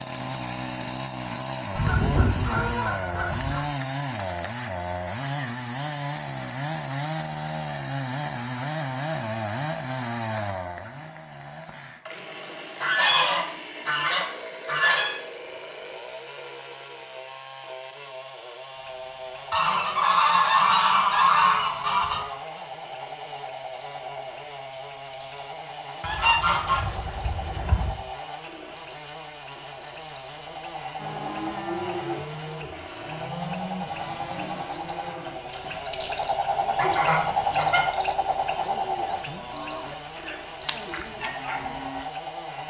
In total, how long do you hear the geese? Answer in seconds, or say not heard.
10 s.